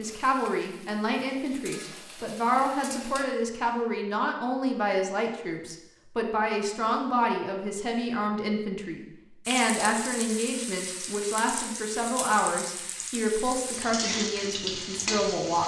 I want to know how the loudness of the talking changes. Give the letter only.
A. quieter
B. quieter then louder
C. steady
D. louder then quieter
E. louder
C.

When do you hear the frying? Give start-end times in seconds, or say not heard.
0.0-3.2, 9.4-15.6.